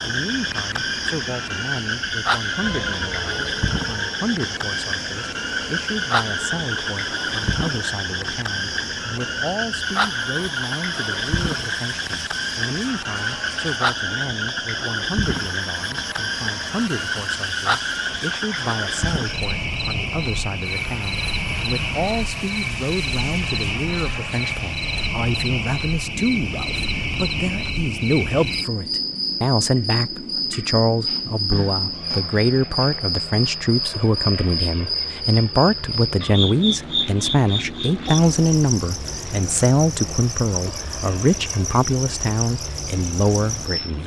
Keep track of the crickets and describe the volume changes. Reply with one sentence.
The loudness of the crickets stays about the same.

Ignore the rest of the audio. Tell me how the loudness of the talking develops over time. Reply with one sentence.
The loudness of the talking goes up.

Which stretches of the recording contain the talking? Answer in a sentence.
You can hear the talking from 0.0 to 44.0 s.